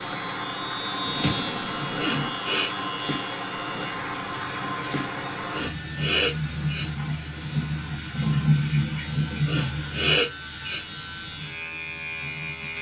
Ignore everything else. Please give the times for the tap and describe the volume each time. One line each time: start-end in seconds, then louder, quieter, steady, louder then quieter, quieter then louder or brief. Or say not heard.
0.0-12.7 louder then quieter.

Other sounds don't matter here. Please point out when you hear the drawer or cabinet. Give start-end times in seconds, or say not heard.
1.0-2.3.